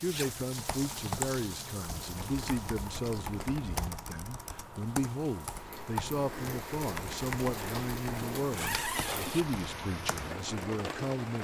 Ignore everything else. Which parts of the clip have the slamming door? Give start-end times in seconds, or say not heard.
not heard.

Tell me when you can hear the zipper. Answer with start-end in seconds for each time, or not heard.
0.0-0.5, 8.4-9.4.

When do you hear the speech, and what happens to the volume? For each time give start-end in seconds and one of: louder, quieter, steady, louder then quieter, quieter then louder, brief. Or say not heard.
0.0-11.4 steady.